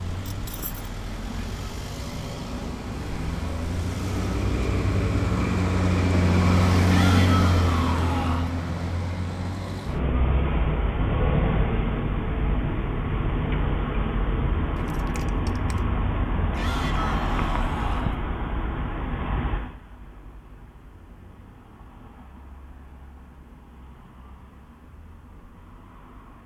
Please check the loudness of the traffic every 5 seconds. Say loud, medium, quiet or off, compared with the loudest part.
medium, loud, loud, medium, quiet, quiet.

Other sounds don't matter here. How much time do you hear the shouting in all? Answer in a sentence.
You can hear the shouting for 3 seconds altogether.